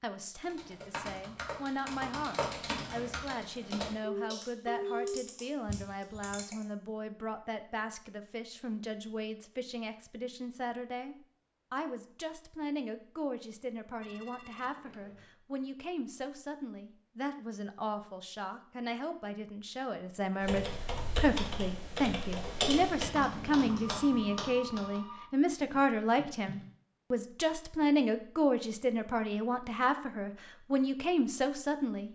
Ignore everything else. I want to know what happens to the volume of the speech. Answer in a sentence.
The loudness of the speech goes up.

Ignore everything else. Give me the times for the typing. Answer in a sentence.
You can hear the typing from 0.4 to 6.7 s and from 20.4 to 26.7 s.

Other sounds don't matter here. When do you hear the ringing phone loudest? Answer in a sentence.
The loudest moment of the ringing phone is at 5 seconds.